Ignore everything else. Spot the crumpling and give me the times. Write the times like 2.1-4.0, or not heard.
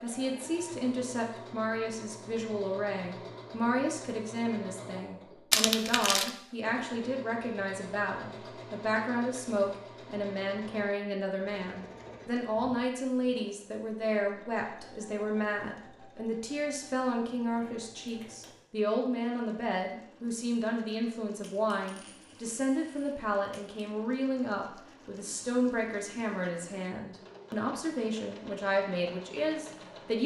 5.5-6.3, 17.6-18.6.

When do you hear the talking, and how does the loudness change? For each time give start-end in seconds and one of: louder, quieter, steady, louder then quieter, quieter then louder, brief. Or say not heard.
0.0-30.2 steady.